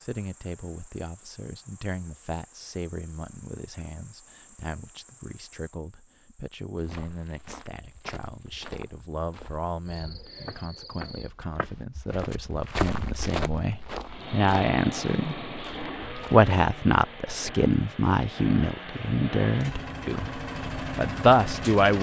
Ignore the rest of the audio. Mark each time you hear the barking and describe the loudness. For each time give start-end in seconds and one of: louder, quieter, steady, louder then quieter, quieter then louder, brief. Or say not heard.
not heard.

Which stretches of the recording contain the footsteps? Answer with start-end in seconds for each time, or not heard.
6.8-16.4.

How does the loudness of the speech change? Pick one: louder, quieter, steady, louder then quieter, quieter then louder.
louder.